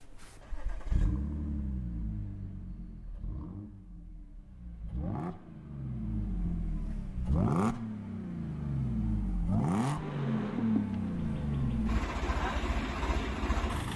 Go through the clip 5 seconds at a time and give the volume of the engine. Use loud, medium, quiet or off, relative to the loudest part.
medium, loud, loud.